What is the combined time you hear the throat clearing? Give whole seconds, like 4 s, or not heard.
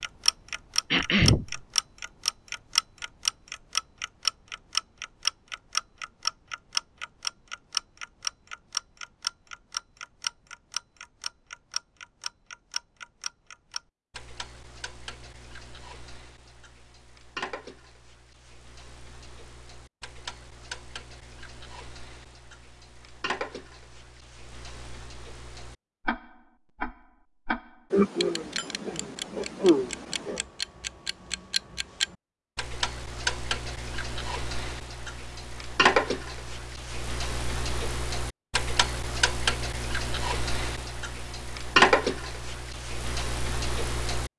3 s.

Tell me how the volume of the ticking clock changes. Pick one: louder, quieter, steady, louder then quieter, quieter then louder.
quieter then louder.